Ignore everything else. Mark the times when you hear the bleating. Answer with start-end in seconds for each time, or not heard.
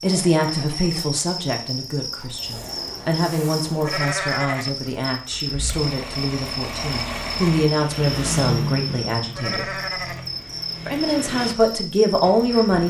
3.8-4.8, 9.3-10.2.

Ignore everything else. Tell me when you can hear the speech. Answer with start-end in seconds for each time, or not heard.
0.0-9.7, 10.8-12.8.